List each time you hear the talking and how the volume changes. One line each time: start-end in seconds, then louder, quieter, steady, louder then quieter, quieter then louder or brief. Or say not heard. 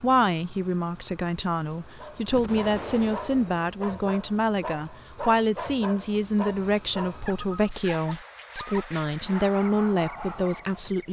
0.0-11.0 steady.